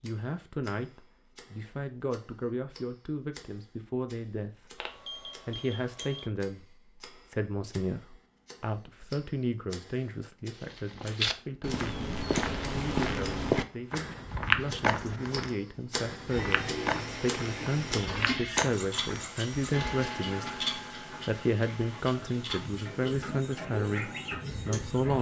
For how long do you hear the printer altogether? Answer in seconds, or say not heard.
9 s.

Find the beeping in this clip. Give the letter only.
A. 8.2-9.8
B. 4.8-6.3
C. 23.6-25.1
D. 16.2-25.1
B.